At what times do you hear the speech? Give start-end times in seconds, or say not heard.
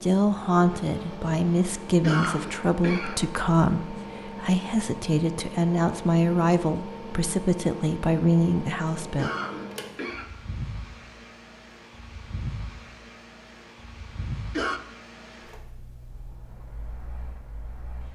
0.0-9.3.